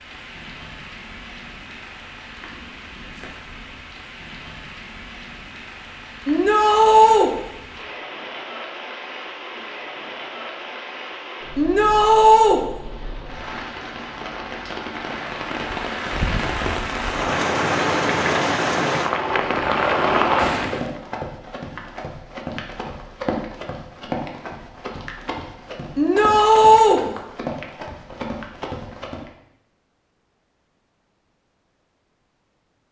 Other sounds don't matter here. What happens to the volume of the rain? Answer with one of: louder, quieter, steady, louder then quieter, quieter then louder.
louder.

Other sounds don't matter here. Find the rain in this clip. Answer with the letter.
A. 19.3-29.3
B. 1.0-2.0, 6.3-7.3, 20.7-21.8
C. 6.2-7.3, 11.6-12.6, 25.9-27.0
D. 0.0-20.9
D.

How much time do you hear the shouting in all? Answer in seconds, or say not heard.
3 s.